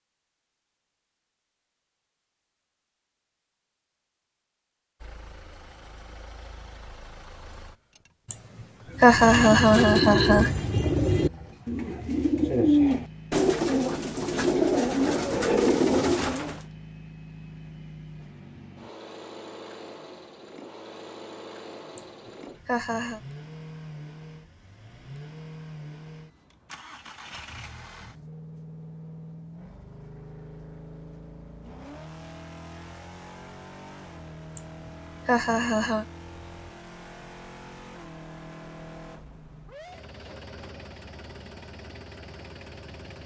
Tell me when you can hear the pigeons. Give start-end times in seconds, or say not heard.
8.9-16.6.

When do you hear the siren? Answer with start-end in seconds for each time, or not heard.
not heard.